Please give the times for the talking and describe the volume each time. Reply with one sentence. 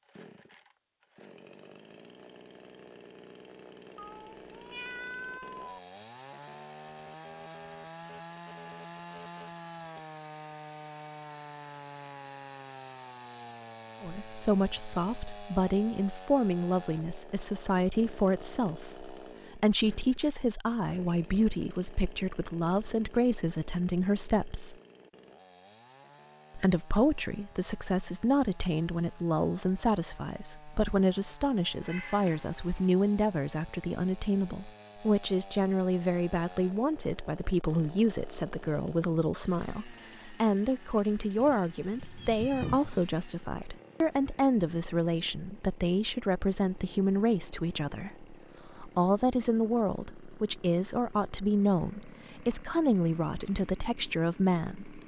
You can hear the talking from 14.0 to 24.8 s, at a steady volume; and from 26.6 to 55.0 s, at a steady volume.